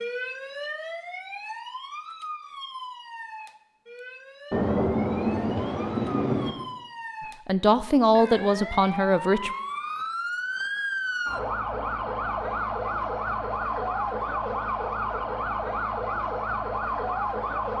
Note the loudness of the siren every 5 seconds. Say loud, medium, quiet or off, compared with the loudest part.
medium, medium, loud, loud.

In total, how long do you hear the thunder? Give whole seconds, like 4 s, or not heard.
2 s.